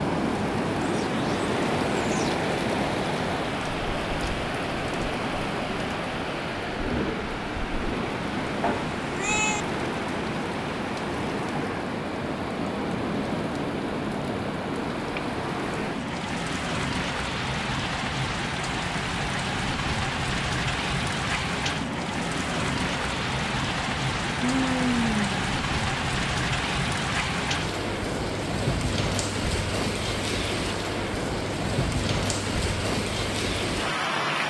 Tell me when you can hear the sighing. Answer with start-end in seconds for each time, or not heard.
24.4-25.4.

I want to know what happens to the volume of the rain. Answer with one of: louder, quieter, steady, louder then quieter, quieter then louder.
steady.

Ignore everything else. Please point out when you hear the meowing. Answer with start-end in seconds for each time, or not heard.
8.6-9.7.